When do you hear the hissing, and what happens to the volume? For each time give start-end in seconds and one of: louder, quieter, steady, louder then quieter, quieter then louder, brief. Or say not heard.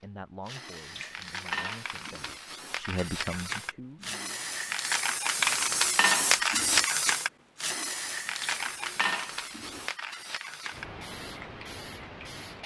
0.0-12.6 louder then quieter.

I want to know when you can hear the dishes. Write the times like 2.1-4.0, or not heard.
0.9-2.4, 5.4-6.8, 8.6-9.8.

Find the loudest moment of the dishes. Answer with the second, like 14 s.
6 s.